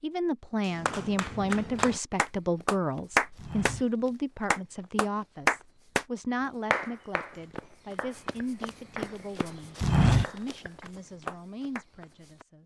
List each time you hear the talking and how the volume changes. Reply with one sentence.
You can hear the talking from 0.0 to 12.6 s, getting quieter.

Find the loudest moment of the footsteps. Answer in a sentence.
The volume of the footsteps peaks at 10 seconds.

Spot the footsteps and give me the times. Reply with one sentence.
The footsteps can be heard from 2.2 to 12.4 s.